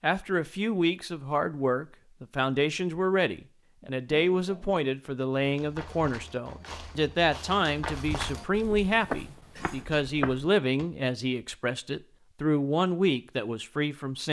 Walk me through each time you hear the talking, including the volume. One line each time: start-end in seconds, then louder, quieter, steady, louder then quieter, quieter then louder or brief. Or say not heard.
0.0-14.2 steady.